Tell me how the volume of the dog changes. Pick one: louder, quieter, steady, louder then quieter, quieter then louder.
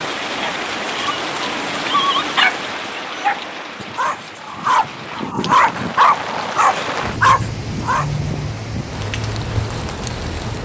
louder.